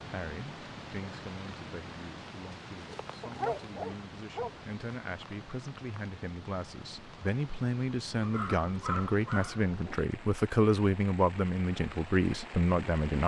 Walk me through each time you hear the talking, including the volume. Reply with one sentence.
The talking can be heard from 0.0 to 13.2 s, getting louder.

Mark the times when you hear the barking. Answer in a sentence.
The barking can be heard from 3.2 to 4.5 s and from 8.2 to 9.9 s.